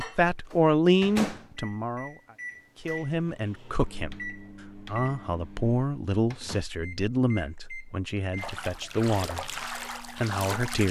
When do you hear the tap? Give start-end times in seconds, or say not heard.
8.3-10.8.